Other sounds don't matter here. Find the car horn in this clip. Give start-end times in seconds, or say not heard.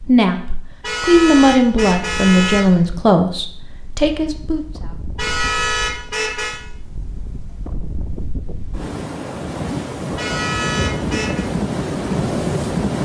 0.8-2.6, 5.2-6.6, 10.2-11.5.